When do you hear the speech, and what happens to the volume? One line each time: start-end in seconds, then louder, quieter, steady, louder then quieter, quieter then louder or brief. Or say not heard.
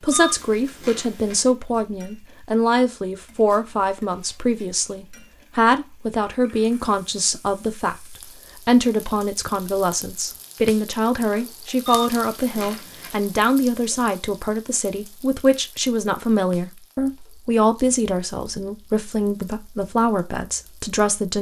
0.0-21.3 steady.